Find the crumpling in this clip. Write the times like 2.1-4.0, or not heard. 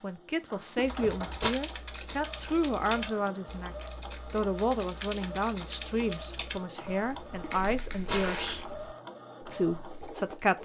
0.8-1.6, 7.5-8.7.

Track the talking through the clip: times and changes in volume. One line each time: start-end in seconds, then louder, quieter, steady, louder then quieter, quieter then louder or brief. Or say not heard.
0.0-8.7 steady
9.4-10.5 brief.